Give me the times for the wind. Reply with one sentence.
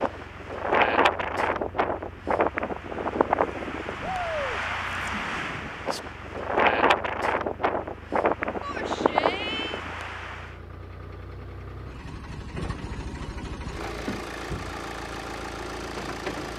The wind can be heard from 0.0 to 10.6 s.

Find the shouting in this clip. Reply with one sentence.
You can hear the shouting from 4.0 to 4.6 s and from 8.6 to 9.8 s.